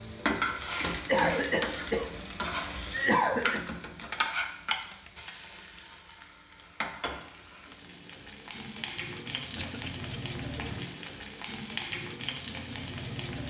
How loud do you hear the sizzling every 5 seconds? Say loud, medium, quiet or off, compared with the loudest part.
loud, medium, loud.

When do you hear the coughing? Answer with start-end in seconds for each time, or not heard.
1.1-2.1, 2.9-3.6, 9.6-10.1.